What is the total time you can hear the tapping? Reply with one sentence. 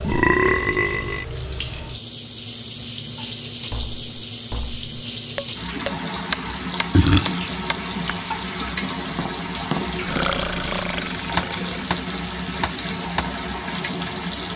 The tapping can be heard for 11 seconds in total.